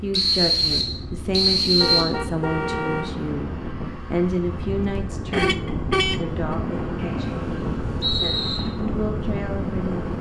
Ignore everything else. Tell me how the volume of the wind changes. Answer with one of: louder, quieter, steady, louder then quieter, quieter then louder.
louder.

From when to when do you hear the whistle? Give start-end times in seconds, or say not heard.
0.1-2.0, 7.0-8.6.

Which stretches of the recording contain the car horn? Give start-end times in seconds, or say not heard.
1.8-3.1, 5.3-6.5.